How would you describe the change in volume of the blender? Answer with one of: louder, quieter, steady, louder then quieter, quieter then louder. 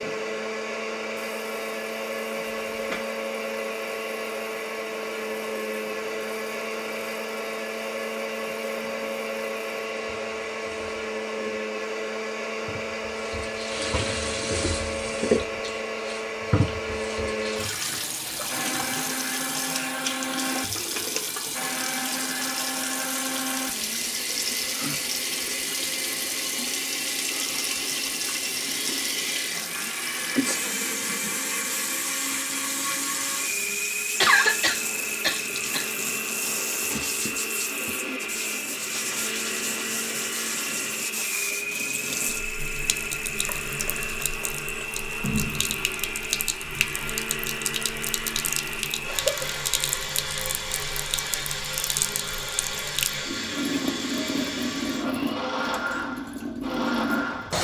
steady.